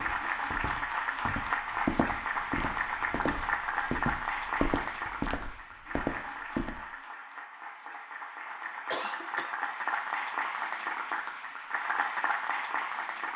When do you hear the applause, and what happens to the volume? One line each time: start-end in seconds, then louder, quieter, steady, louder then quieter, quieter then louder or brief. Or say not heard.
0.0-13.3 quieter then louder.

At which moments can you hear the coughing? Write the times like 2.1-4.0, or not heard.
8.9-9.6.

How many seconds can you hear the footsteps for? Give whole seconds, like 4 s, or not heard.
7 s.